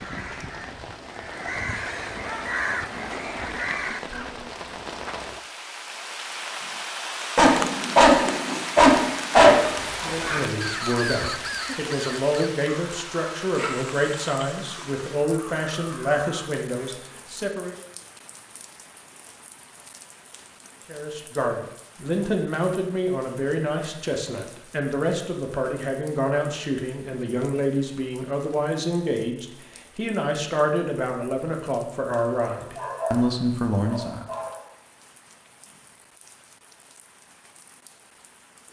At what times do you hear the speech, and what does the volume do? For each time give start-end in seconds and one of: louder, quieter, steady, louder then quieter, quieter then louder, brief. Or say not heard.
9.8-17.8 steady
20.9-34.2 steady.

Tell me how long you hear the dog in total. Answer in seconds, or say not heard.
6 s.